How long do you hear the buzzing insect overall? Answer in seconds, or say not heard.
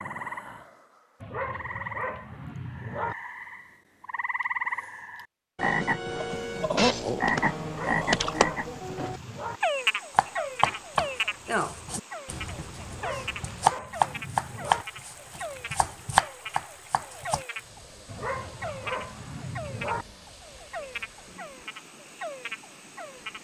not heard.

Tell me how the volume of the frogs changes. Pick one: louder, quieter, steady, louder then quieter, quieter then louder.
louder then quieter.